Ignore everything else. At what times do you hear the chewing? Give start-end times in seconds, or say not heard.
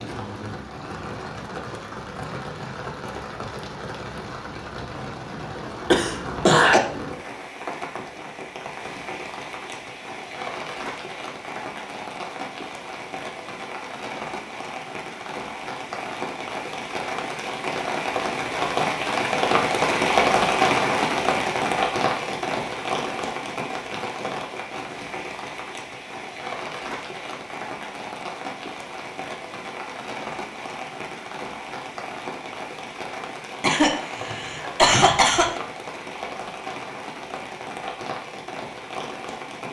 not heard.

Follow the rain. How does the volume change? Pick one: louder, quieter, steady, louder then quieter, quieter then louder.
louder then quieter.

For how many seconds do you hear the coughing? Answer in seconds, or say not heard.
3 s.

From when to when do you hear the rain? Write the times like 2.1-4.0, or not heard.
0.0-39.6.